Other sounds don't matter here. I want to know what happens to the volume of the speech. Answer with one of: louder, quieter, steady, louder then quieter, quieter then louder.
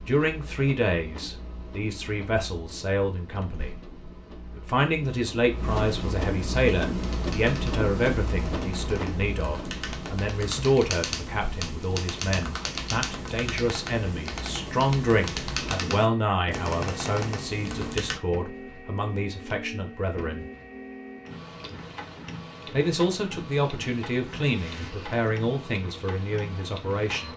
steady.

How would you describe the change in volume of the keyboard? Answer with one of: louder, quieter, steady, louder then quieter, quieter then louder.
louder.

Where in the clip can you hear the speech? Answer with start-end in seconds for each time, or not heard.
0.0-4.0, 4.5-20.4, 22.7-27.3.